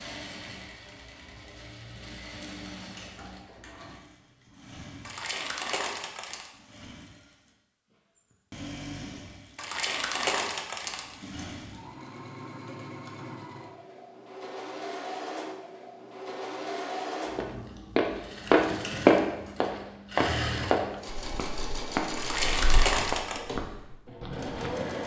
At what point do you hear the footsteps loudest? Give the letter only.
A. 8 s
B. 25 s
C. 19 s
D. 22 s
C.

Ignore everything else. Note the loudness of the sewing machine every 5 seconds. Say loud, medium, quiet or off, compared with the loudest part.
medium, medium, medium, loud, loud.